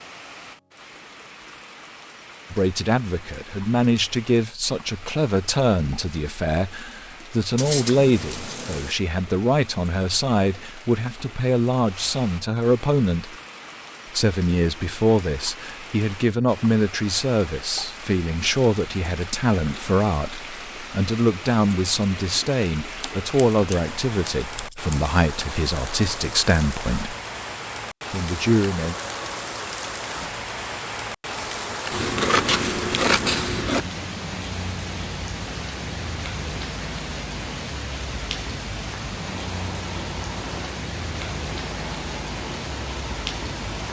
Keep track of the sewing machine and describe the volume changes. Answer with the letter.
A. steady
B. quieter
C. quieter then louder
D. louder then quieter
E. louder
A.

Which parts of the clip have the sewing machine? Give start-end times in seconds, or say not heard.
39.2-43.8.